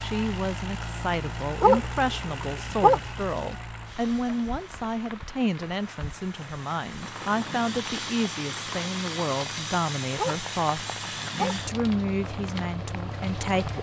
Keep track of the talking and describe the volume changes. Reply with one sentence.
The loudness of the talking stays about the same.